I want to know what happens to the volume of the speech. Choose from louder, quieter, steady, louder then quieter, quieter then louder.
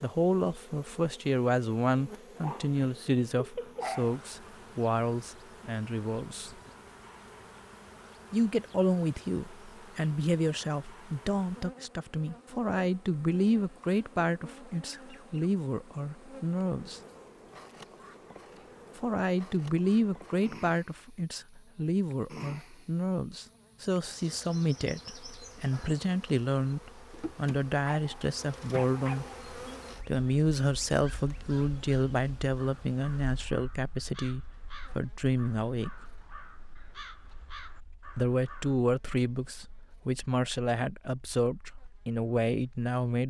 steady.